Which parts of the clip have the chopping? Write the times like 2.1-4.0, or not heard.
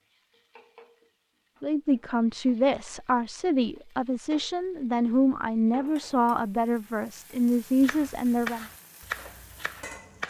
7.8-10.2.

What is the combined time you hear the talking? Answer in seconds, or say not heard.
7 s.